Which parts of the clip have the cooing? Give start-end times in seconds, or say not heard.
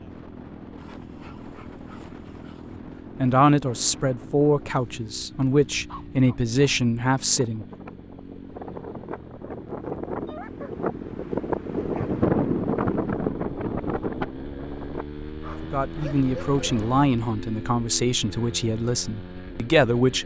not heard.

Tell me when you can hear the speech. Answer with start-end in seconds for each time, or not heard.
3.1-7.7, 15.6-20.2.